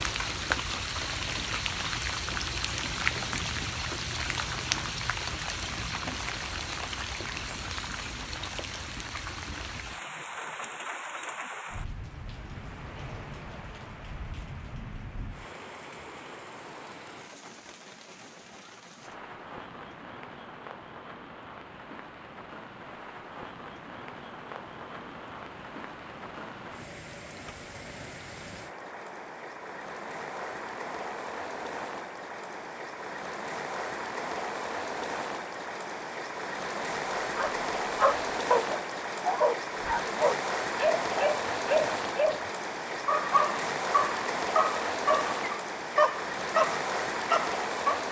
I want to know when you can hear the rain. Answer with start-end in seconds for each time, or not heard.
0.0-48.0.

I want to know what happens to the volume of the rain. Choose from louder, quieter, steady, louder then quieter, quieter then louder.
quieter then louder.